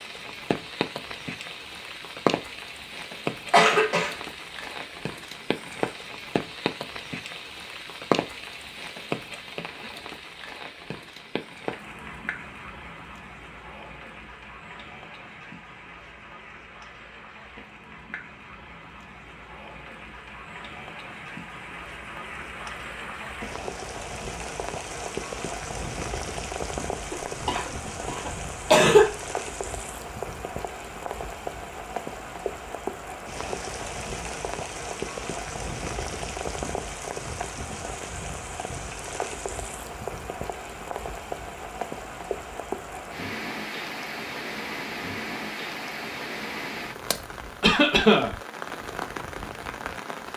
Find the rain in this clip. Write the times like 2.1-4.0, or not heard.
0.0-50.3.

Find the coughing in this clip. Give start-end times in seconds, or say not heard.
3.5-4.2, 27.1-29.1, 47.6-48.3.